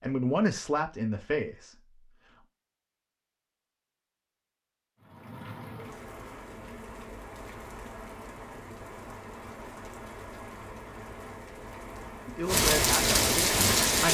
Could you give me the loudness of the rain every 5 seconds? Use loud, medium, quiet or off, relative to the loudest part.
off, quiet, loud.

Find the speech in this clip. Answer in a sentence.
You can hear the speech from 0.0 to 1.9 s and from 12.2 to 14.0 s.